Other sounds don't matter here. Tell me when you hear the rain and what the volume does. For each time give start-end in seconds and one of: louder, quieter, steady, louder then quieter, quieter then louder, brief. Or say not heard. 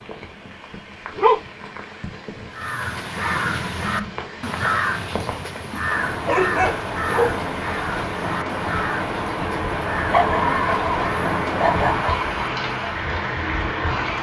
0.0-14.1 louder.